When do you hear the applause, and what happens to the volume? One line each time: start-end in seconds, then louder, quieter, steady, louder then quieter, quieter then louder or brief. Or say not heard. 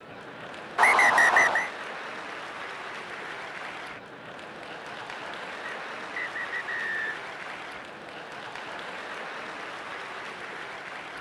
0.0-11.1 steady.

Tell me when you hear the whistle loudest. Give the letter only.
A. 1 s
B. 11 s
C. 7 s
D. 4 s
A.